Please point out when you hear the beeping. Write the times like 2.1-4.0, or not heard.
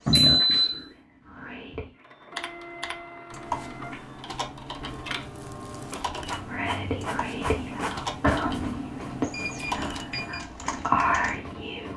0.1-0.8, 4.9-6.0, 9.3-10.4.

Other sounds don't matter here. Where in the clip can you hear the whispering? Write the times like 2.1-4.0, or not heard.
0.0-1.9, 6.3-11.9.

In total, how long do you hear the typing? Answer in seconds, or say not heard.
9 s.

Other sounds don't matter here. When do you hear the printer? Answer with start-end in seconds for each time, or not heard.
1.9-11.9.